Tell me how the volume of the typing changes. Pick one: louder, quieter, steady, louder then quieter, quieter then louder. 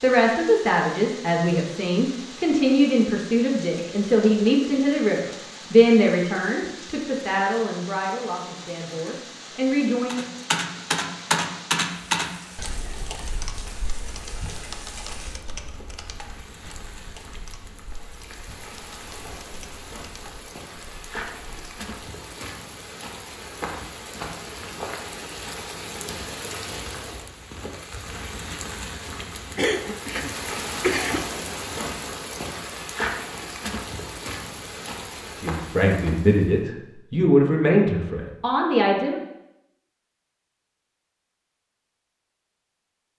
quieter.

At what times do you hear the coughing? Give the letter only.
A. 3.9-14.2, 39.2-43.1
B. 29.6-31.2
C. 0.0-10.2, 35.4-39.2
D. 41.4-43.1
B.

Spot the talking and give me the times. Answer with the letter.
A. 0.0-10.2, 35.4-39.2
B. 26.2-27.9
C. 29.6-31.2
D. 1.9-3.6
A.